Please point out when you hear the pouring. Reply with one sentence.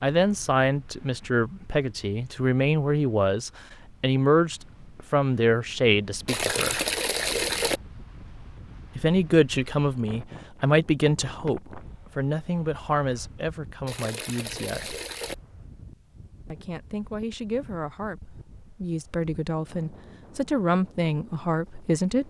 The pouring can be heard from 6.2 to 7.8 s and from 13.8 to 15.3 s.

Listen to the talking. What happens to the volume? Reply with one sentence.
The loudness of the talking goes down, then up.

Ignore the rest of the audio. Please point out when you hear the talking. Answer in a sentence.
You can hear the talking from 0.0 to 6.8 s, from 8.9 to 15.0 s and from 16.5 to 22.2 s.